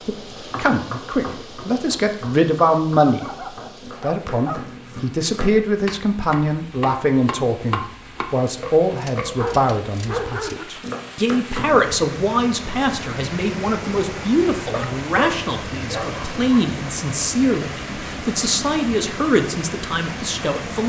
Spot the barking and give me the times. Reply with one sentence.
The barking can be heard from 3.0 to 4.6 s, from 9.2 to 10.7 s and from 14.7 to 16.6 s.